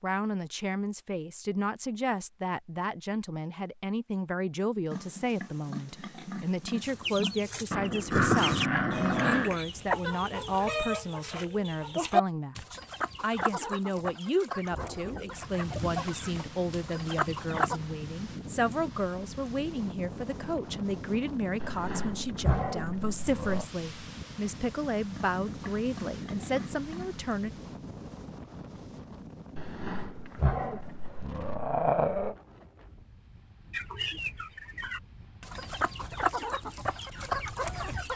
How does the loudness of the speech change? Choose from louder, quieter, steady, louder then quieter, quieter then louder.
steady.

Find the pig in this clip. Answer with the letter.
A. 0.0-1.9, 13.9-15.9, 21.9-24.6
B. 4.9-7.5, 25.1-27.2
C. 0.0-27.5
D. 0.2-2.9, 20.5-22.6
B.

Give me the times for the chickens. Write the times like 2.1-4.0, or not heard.
6.8-17.8, 33.7-38.1.